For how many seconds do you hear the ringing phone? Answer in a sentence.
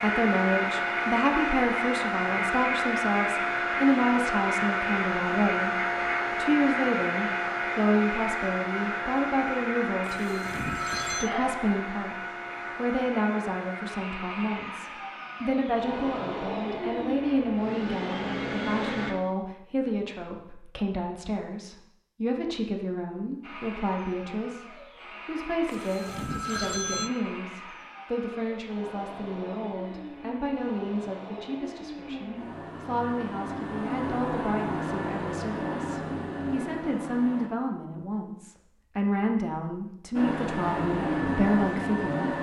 The ringing phone can be heard for 3 seconds in total.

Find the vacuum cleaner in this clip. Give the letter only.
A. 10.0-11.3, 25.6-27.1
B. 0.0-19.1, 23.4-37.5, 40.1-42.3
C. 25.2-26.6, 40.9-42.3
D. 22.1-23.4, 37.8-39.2
B.